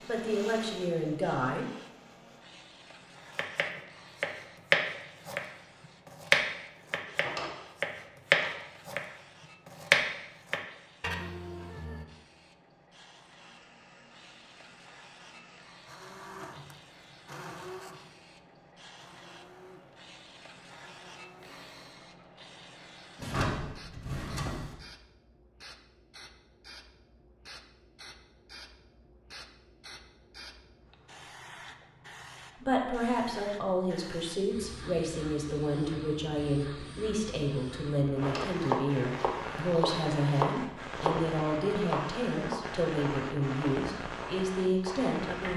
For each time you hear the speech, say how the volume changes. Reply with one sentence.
You can hear the speech briefly from 0.0 to 1.7 s; and from 32.6 to 45.5 s, at a steady volume.